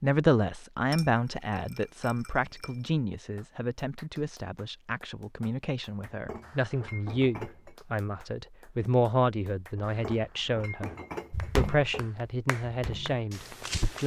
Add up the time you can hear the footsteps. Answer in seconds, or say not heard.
3 s.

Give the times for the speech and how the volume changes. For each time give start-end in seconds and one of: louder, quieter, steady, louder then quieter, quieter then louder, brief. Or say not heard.
0.0-10.9 quieter then louder
11.6-14.0 brief.